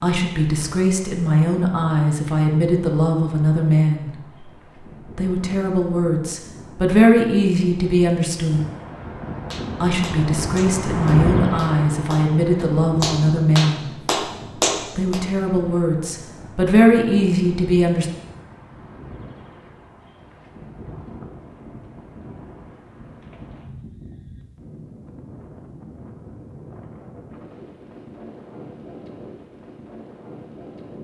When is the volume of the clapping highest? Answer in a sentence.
The loudest moment of the clapping is at 15 seconds.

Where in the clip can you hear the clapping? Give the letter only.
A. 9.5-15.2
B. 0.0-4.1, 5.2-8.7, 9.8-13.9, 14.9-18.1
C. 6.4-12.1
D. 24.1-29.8
A.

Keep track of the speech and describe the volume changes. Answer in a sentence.
The volume of the speech stays about the same.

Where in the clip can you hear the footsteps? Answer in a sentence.
The footsteps can't be heard in this clip.